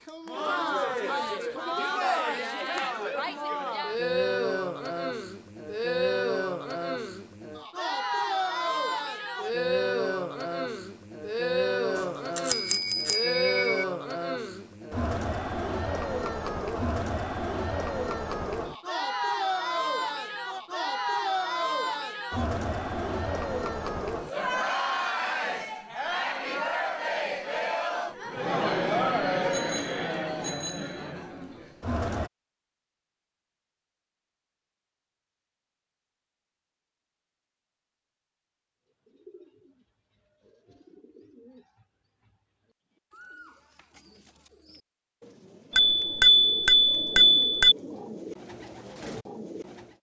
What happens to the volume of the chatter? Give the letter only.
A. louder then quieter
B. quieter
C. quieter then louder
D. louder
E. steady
E.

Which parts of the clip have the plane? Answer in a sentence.
You can't hear the plane here.